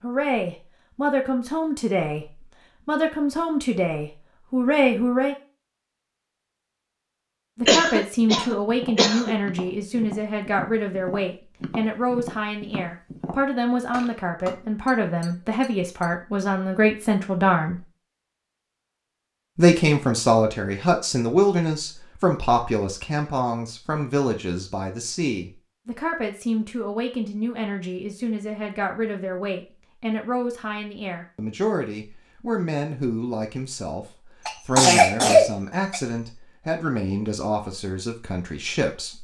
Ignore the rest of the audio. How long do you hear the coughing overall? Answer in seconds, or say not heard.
3 s.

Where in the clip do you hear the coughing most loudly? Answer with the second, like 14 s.
35 s.